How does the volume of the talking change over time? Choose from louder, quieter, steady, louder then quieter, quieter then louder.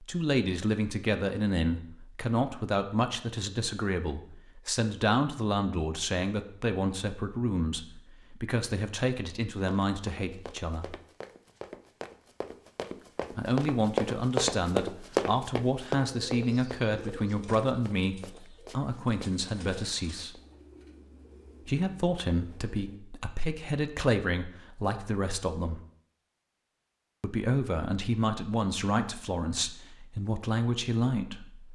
steady.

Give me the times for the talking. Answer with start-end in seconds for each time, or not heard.
0.0-10.9, 13.3-20.4, 21.6-25.8, 27.2-31.6.